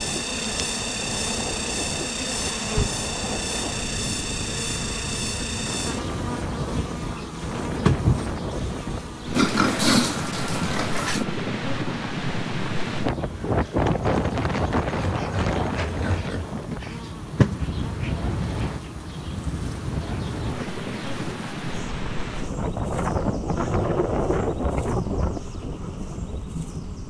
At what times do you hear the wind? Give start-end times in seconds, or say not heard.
0.0-27.0.